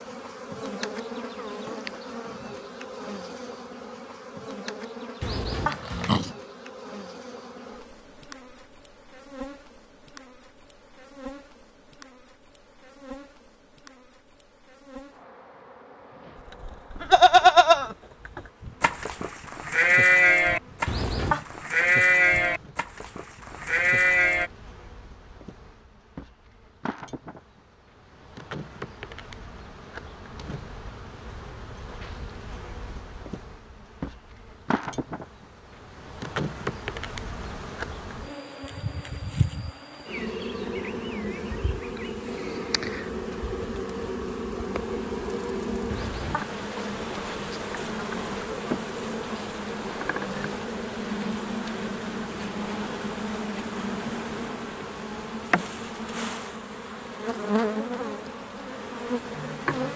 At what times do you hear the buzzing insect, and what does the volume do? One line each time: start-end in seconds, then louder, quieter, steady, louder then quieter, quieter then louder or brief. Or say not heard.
0.0-59.9 quieter then louder.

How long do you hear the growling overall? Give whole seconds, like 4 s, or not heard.
2 s.